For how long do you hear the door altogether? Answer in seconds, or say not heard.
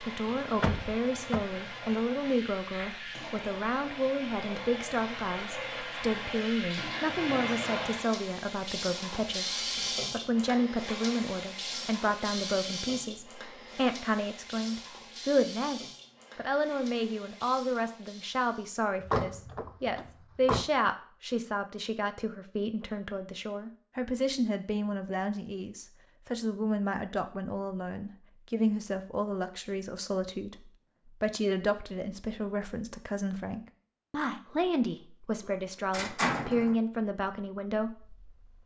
4 s.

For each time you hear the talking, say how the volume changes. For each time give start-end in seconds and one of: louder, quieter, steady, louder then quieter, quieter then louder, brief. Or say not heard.
0.0-38.6 steady.